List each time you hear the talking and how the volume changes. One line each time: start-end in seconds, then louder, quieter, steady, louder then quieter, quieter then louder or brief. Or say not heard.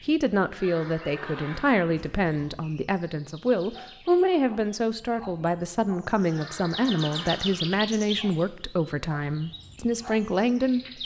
0.0-10.9 steady.